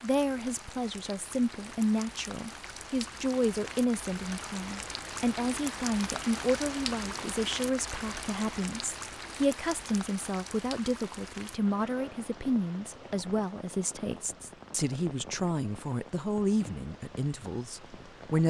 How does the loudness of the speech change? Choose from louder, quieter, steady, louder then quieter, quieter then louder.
steady.